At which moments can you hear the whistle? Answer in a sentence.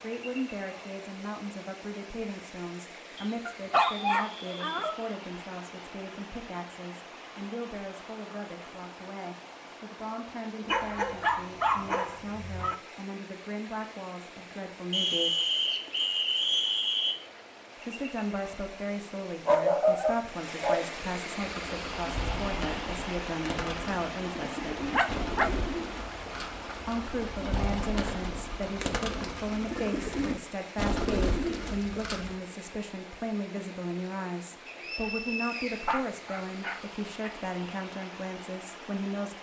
The whistle can be heard from 3.1 to 4.7 s, from 14.9 to 17.1 s and from 34.6 to 36.0 s.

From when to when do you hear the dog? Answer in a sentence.
You can hear the dog from 3.5 to 5.0 s, from 10.7 to 12.8 s, from 19.4 to 20.9 s, from 24.9 to 25.5 s and from 35.9 to 37.3 s.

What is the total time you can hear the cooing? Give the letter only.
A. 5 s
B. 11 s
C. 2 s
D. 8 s
B.